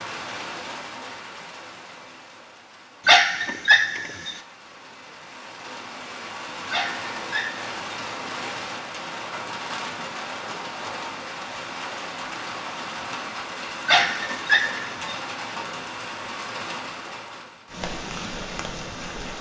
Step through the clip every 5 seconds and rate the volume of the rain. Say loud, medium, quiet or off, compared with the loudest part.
medium, loud, loud, loud.